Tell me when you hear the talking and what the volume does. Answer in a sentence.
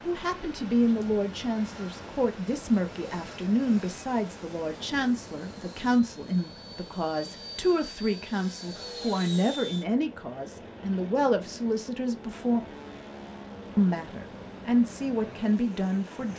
The talking can be heard from 0.0 to 12.6 s, at a steady volume; and briefly from 13.8 to 16.3 s.